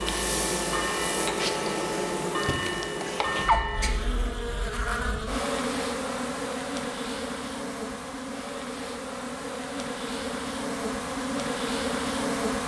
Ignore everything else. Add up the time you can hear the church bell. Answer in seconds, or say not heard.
4 s.